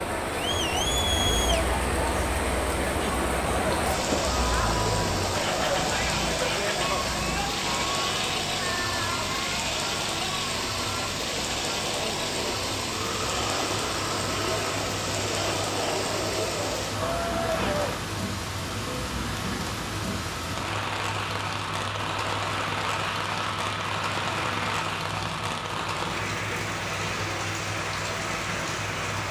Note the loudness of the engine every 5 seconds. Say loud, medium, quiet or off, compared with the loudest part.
medium, loud, loud, medium, loud, loud.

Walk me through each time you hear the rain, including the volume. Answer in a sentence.
You can hear the rain from 0.0 to 29.2 s, at a steady volume.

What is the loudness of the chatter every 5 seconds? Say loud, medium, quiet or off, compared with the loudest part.
loud, loud, medium, loud, off, off.